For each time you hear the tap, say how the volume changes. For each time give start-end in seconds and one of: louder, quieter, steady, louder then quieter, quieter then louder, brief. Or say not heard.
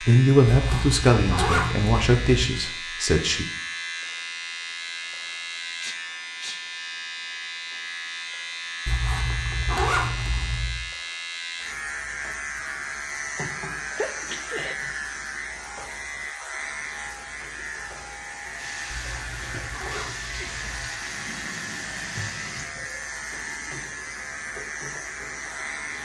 18.6-25.9 quieter.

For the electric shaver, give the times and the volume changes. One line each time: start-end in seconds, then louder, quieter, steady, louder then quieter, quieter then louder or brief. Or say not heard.
0.0-25.9 steady.